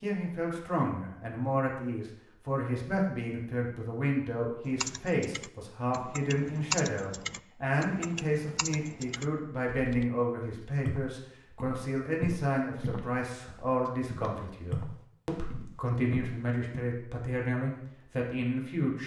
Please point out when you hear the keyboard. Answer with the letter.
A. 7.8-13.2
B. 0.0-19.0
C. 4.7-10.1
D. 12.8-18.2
C.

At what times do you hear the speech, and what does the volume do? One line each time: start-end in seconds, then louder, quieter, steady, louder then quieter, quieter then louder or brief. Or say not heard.
0.0-19.0 steady.